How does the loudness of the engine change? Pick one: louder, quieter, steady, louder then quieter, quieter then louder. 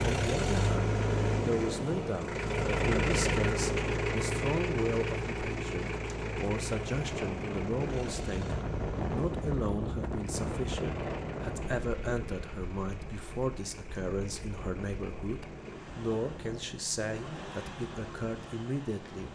quieter.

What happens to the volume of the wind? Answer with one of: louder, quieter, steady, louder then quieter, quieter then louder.
quieter.